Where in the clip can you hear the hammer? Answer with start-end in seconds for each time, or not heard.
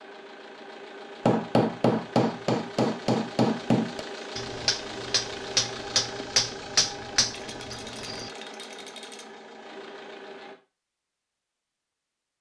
1.2-8.3.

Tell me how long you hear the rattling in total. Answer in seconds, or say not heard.
2 s.